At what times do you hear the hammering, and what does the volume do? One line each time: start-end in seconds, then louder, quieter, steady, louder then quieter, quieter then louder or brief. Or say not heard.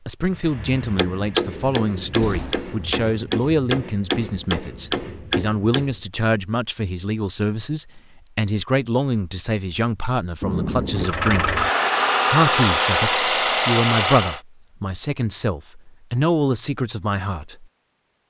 0.3-6.0 steady.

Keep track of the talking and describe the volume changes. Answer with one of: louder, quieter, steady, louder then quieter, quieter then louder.
steady.